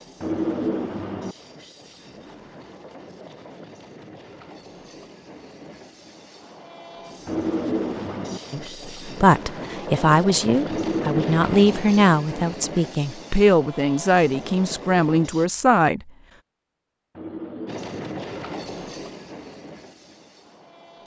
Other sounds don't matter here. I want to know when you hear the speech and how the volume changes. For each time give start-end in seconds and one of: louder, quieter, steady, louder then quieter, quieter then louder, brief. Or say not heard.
8.5-16.1 steady.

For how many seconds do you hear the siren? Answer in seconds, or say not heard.
not heard.